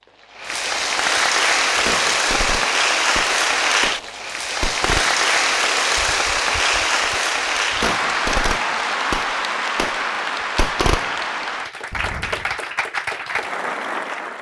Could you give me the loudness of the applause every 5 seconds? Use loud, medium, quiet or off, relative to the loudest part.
loud, loud, medium.